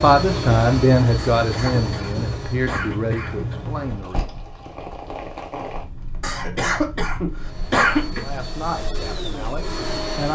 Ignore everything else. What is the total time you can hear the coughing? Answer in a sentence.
You can hear the coughing for 4 seconds altogether.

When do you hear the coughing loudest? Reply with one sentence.
The volume of the coughing peaks at 8 seconds.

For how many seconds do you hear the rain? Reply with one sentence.
You can hear the rain for 10 seconds altogether.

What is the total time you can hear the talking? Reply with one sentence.
You can hear the talking for 6 seconds altogether.